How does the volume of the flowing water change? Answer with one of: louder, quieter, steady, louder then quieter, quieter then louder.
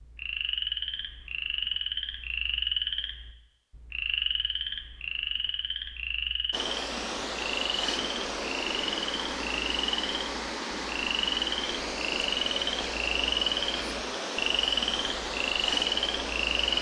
steady.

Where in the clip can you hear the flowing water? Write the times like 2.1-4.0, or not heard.
6.5-16.7.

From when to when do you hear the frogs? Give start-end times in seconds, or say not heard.
0.0-16.7.